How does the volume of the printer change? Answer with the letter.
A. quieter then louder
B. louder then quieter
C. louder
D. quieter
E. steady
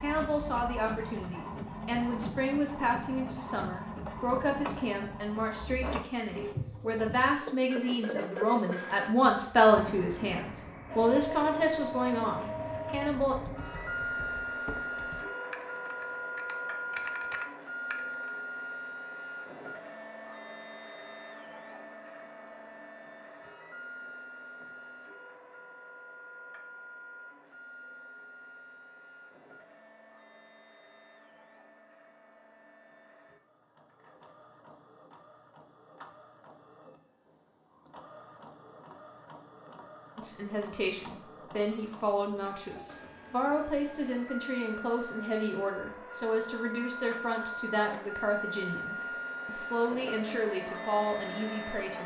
A.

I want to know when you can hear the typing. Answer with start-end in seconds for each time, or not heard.
13.0-18.4.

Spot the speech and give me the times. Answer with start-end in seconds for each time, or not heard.
0.0-13.3, 40.1-52.0.